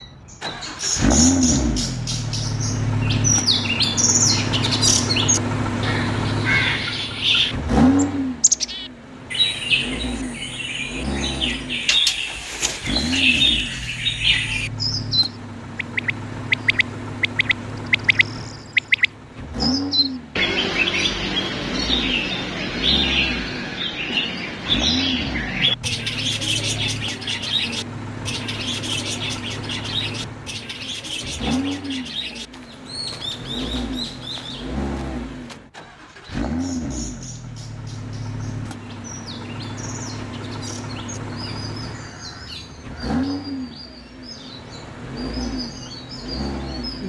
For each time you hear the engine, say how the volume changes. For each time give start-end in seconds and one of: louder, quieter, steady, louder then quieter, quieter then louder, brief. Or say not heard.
0.1-47.0 quieter.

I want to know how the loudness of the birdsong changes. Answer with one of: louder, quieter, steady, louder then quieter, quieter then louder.
quieter.